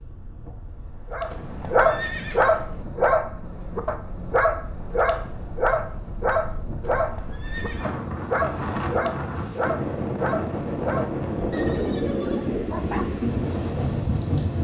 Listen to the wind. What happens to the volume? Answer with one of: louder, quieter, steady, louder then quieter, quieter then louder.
louder.